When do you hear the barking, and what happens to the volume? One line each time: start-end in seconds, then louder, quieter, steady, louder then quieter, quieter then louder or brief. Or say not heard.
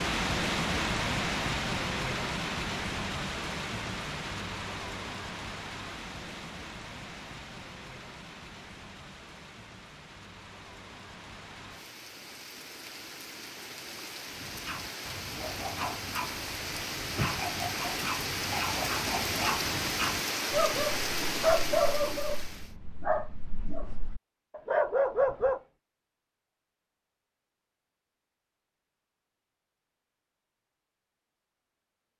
14.3-25.6 louder.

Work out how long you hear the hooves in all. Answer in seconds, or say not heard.
not heard.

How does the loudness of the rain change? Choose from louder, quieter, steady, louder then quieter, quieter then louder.
quieter then louder.